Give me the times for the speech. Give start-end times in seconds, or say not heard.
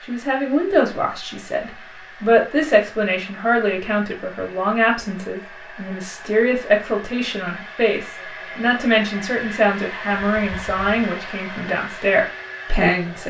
0.0-13.2.